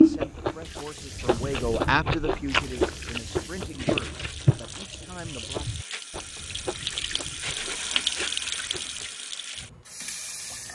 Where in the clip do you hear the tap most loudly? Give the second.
8 s.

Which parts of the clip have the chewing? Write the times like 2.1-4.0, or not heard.
0.0-9.1.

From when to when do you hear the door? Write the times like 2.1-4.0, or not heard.
not heard.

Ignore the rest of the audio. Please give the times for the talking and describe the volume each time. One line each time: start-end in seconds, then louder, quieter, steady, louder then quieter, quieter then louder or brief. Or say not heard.
0.0-5.7 louder then quieter.